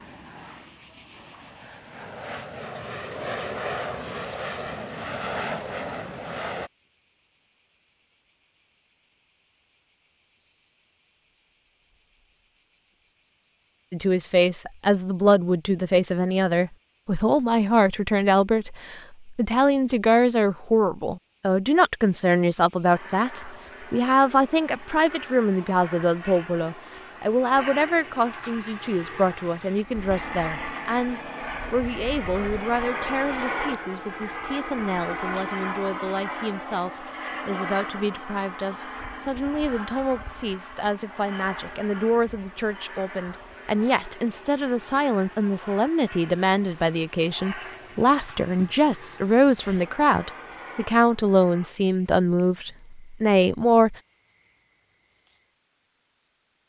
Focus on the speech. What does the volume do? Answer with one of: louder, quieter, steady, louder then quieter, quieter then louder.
quieter then louder.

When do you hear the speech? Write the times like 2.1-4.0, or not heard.
13.9-54.0.